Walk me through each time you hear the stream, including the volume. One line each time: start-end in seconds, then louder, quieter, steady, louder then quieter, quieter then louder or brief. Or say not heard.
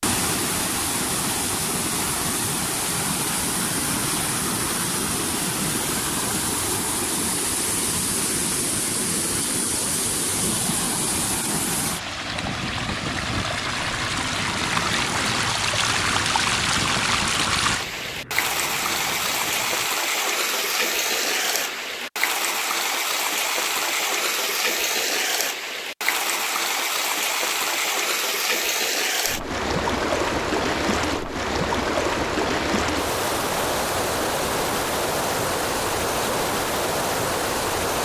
0.0-38.0 steady.